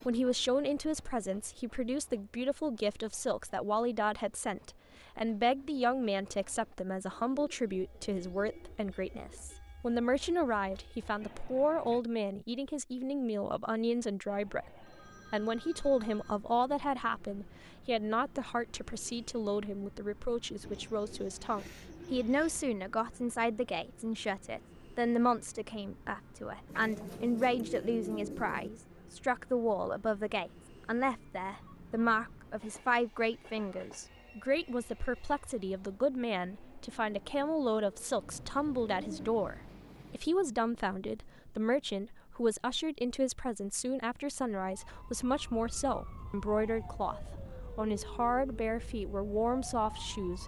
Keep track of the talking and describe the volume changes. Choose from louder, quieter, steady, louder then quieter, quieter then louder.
steady.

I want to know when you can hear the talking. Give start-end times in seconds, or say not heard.
0.0-50.4.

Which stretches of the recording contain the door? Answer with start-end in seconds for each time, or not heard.
not heard.